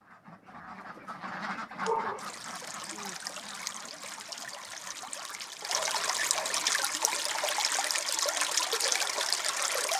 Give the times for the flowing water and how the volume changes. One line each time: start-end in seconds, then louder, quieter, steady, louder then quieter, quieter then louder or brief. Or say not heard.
2.1-9.9 louder.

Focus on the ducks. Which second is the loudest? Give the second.
2 s.